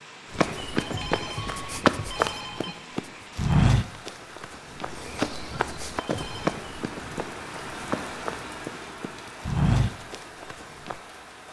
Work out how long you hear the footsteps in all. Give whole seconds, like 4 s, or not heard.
11 s.